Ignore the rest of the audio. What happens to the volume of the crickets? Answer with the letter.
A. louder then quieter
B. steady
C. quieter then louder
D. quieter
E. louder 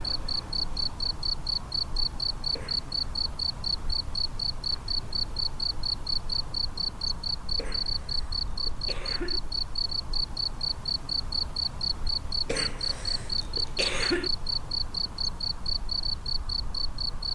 B.